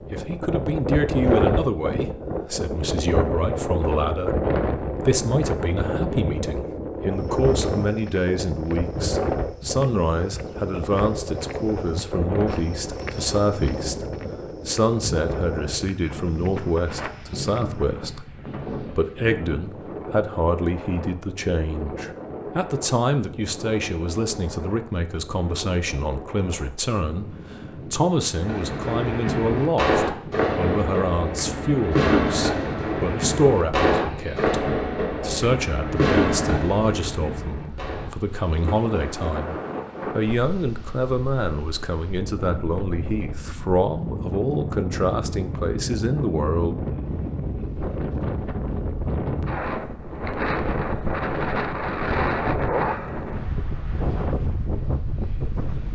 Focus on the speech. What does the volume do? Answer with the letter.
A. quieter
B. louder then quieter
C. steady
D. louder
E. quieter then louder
C.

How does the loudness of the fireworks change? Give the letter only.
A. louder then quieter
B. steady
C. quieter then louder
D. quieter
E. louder
D.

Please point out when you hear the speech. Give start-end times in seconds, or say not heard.
0.1-46.8.